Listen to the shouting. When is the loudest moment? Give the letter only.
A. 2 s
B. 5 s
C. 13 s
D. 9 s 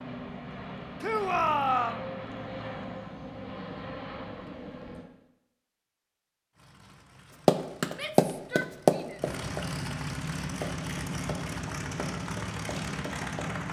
A.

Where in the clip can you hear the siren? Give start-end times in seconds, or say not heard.
not heard.